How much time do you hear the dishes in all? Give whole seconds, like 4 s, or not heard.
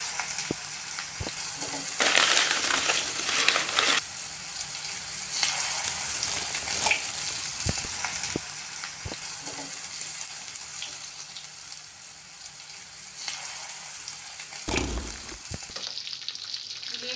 not heard.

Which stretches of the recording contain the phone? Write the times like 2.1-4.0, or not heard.
not heard.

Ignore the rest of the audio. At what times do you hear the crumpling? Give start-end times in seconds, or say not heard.
2.0-4.0, 5.8-8.4, 14.7-15.4.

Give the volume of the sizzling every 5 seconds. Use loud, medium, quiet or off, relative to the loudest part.
loud, loud, medium, medium.